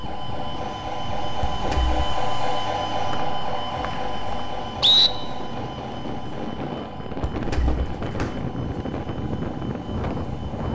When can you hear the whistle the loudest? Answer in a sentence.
The loudest moment of the whistle is at 5 seconds.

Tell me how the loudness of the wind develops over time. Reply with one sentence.
The volume of the wind goes up.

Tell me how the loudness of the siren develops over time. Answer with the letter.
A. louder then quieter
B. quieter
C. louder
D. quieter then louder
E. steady
B.